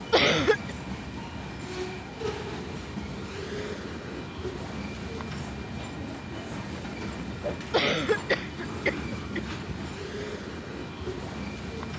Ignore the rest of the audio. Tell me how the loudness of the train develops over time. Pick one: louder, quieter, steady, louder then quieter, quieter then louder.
steady.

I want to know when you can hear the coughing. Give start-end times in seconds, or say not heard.
0.1-0.8, 7.7-9.4.